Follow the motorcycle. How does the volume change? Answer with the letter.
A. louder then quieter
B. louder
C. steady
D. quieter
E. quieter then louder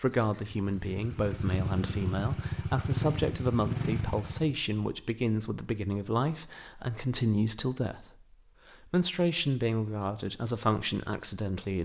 B.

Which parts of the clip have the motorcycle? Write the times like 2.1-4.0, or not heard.
0.0-4.5.